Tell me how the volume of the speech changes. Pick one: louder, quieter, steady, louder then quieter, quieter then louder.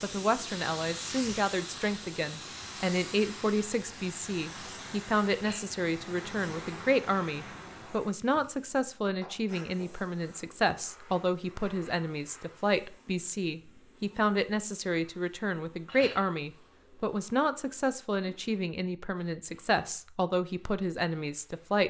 steady.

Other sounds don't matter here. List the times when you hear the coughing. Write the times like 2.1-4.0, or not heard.
not heard.